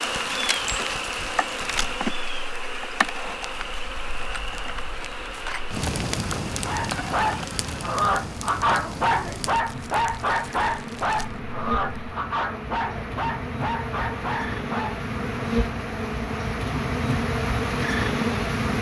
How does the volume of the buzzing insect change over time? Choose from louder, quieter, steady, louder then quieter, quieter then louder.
quieter then louder.